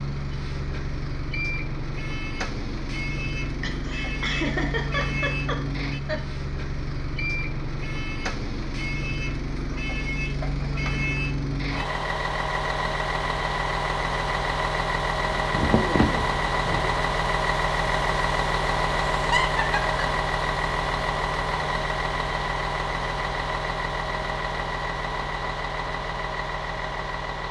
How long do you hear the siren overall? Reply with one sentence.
The siren can't be heard in this clip.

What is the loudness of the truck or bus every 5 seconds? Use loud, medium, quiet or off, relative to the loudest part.
medium, medium, loud, loud, loud, medium.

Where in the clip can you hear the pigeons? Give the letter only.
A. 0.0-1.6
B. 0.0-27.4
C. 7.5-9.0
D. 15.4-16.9
D.